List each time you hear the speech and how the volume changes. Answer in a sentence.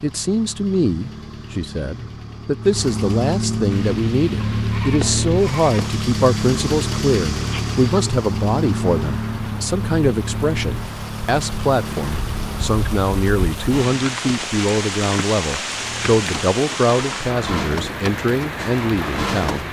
The speech can be heard from 0.0 to 19.6 s, at a steady volume.